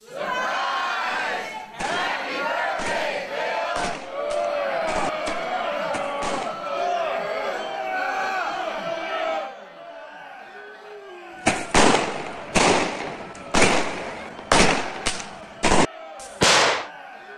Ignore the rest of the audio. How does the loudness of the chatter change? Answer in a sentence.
The volume of the chatter goes down.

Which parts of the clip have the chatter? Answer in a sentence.
The chatter can be heard from 0.0 to 17.3 s.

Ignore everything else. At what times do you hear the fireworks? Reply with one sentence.
The fireworks can be heard from 1.1 to 6.7 s and from 11.4 to 16.9 s.